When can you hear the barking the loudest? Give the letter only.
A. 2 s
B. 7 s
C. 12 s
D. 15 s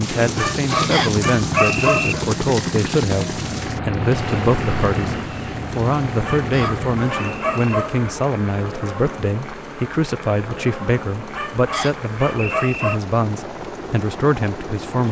A.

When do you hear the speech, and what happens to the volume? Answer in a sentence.
You can hear the speech from 0.0 to 15.0 s, at a steady volume.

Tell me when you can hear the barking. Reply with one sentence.
The barking can be heard from 0.3 to 2.3 s, from 6.2 to 8.1 s and from 11.3 to 13.1 s.